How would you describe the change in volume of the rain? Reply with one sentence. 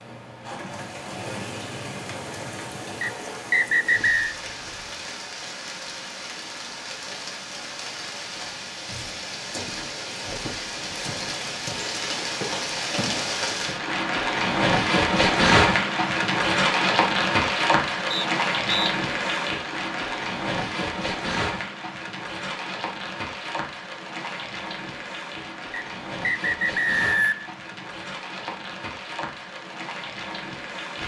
The volume of the rain goes up, then down.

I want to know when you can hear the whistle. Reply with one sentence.
The whistle can be heard from 3.0 to 4.3 s, from 18.1 to 18.9 s and from 25.7 to 27.6 s.